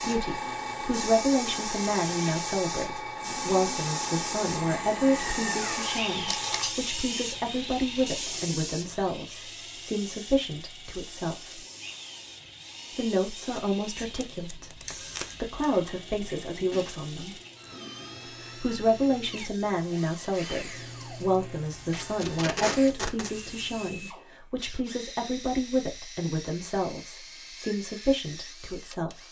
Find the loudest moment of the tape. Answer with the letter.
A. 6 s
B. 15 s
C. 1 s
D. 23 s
D.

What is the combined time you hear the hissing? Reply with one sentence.
The hissing can be heard for 24 seconds in total.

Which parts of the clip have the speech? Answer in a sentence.
The speech can be heard from 0.0 to 11.6 s, from 12.9 to 17.4 s and from 18.6 to 29.2 s.